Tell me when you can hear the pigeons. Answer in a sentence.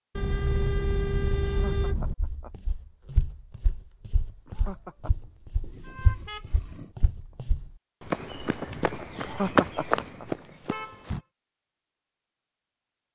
You can't hear the pigeons here.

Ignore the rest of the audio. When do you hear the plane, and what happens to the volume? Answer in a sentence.
You can't hear the plane here.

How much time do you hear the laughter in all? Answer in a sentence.
You can hear the laughter for 3 seconds altogether.